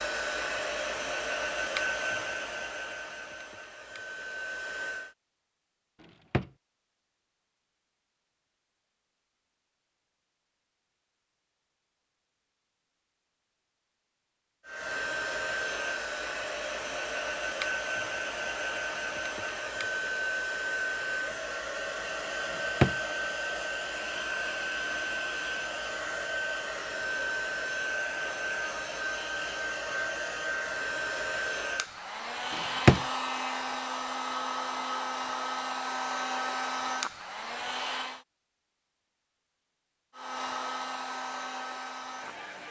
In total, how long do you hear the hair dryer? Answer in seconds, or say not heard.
31 s.